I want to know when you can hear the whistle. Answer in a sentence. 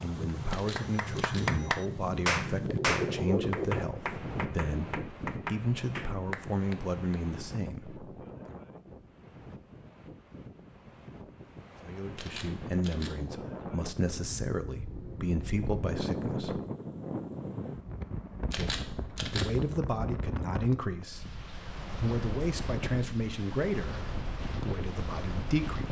You can't hear the whistle here.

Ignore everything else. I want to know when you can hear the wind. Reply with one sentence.
You can hear the wind from 0.0 to 25.8 s.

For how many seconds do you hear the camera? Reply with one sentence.
You can hear the camera for 3 seconds altogether.